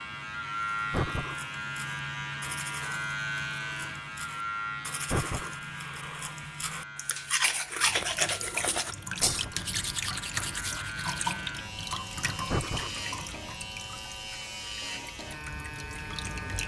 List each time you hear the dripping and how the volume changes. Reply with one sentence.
You can hear the dripping from 7.8 to 16.6 s, getting quieter.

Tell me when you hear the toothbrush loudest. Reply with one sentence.
The volume of the toothbrush peaks at 8 seconds.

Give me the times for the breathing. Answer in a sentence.
You can hear the breathing from 0.9 to 1.4 s, from 5.1 to 5.5 s, from 9.2 to 9.7 s and from 12.4 to 12.9 s.